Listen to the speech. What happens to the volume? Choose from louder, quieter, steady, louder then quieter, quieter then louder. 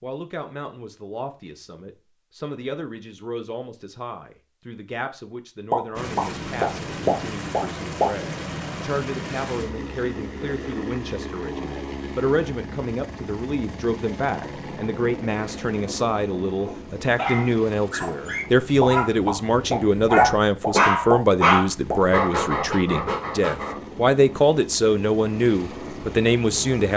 louder.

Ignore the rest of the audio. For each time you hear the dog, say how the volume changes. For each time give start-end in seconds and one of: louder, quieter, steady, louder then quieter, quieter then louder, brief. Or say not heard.
16.6-23.8 louder then quieter.